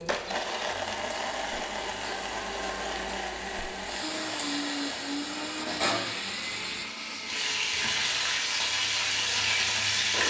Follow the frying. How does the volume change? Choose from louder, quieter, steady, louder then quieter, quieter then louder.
louder.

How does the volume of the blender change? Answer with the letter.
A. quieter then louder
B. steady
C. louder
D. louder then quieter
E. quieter
E.